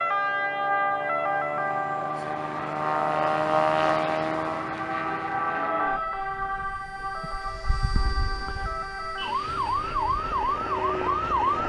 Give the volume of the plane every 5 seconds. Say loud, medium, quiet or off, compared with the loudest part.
loud, medium, medium.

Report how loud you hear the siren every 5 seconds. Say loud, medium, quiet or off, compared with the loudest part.
loud, medium, loud.